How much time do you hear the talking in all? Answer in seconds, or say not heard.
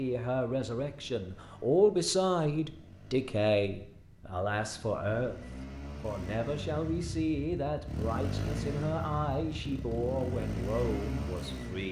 12 s.